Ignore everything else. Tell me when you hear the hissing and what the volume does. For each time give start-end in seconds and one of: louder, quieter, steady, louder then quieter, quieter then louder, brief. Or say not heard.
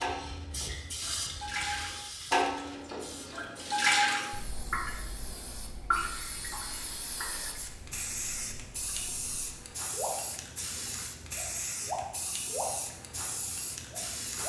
0.0-14.4 quieter then louder.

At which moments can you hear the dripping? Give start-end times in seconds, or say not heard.
0.0-14.4.